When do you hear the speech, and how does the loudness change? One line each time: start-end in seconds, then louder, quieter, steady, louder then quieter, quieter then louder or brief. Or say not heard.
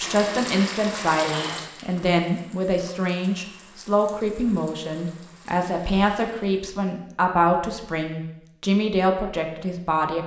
0.0-10.2 steady.